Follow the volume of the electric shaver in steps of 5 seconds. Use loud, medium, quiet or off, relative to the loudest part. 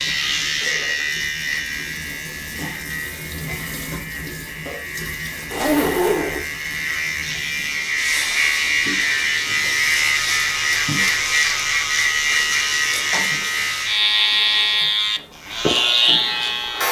medium, loud, loud, loud.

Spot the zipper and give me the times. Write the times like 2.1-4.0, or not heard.
5.5-6.5.